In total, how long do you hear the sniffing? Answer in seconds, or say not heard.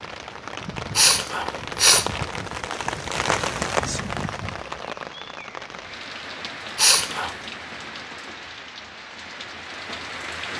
2 s.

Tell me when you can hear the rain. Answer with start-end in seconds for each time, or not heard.
0.0-10.5.